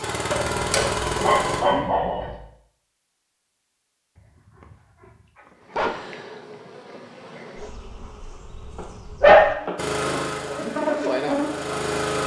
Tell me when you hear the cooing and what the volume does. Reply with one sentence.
The cooing can't be heard in this clip.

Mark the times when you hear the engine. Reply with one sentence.
You can hear the engine from 0.0 to 1.6 s and from 9.8 to 12.2 s.